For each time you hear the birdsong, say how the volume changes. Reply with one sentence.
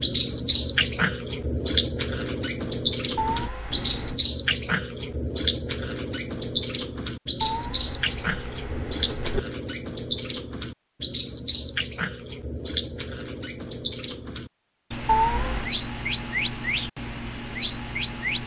The birdsong can be heard from 0.0 to 18.4 s, getting quieter.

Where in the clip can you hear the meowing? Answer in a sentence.
The meowing can be heard from 3.1 to 4.2 s, from 7.4 to 9.4 s and from 15.1 to 15.8 s.